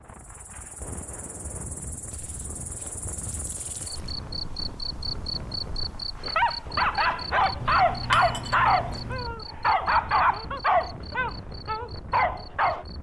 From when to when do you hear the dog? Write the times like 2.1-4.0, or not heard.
6.2-12.8.